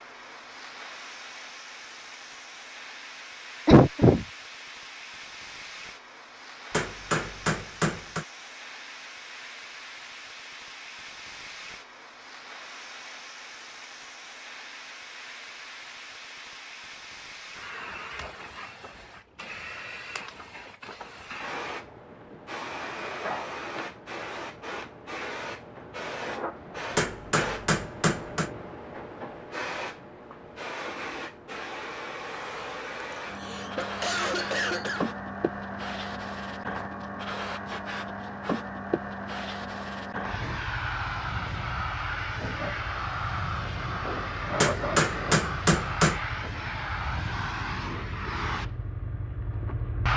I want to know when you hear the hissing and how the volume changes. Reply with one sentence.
You can hear the hissing from 0.0 to 50.1 s, getting louder.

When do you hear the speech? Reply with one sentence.
You can't hear the speech here.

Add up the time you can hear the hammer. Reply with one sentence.
The hammer can be heard for 5 seconds in total.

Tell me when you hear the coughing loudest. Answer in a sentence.
The volume of the coughing peaks at 4 seconds.